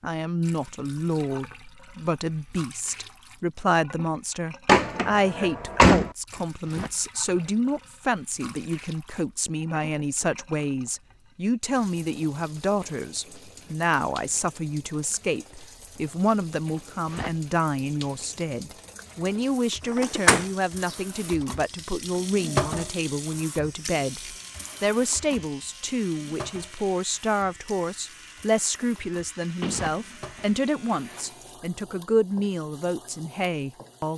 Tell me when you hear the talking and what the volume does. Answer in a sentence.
The talking can be heard from 0.0 to 34.1 s, at a steady volume.